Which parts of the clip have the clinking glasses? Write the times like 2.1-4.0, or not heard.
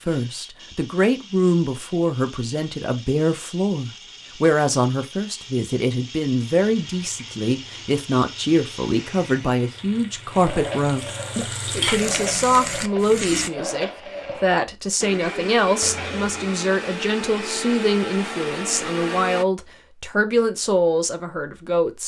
not heard.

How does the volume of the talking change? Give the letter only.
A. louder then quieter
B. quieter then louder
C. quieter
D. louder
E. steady
E.